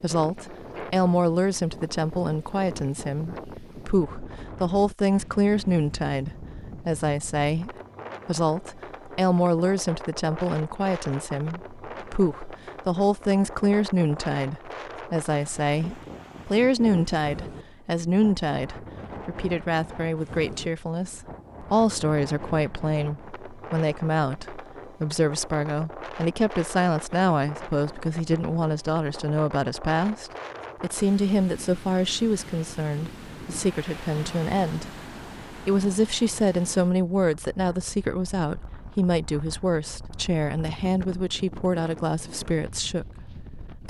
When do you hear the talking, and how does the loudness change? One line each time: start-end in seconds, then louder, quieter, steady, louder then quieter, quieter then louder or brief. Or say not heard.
0.0-34.9 steady
35.5-43.8 quieter.